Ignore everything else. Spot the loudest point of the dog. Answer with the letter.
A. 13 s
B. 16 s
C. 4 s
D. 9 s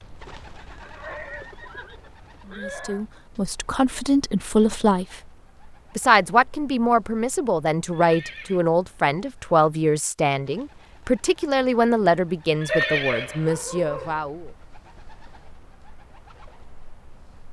A.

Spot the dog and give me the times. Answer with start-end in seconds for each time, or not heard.
12.7-14.2.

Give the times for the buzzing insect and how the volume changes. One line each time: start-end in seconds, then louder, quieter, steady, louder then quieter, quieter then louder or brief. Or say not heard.
not heard.